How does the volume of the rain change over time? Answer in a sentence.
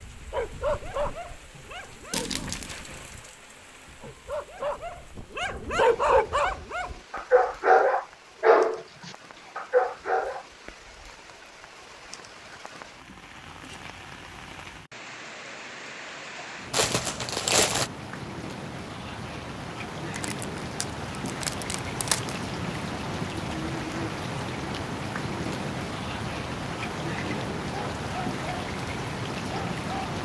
The loudness of the rain goes up.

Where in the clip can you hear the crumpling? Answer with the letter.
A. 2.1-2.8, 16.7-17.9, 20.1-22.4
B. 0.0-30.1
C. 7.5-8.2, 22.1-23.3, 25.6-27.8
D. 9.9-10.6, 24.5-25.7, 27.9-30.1
A.